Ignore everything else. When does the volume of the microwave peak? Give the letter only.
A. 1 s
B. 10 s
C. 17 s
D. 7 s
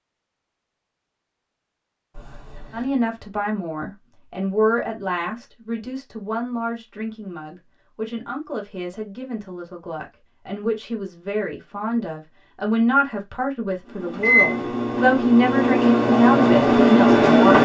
C.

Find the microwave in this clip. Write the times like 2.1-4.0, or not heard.
13.9-17.6.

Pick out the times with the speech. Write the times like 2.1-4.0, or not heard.
2.7-17.6.